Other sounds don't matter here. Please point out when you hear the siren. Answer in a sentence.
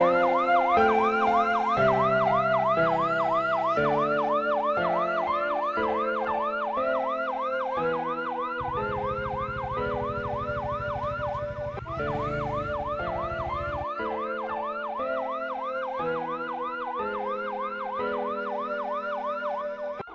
The siren can be heard from 0.0 to 20.1 s.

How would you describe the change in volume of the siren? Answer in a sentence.
The loudness of the siren goes down.